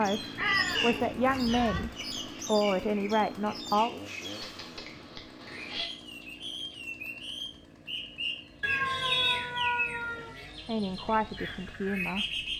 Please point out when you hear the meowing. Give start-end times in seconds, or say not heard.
0.3-1.8, 4.4-5.8, 8.6-10.3.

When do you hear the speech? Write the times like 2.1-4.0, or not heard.
0.0-3.9, 10.7-12.5.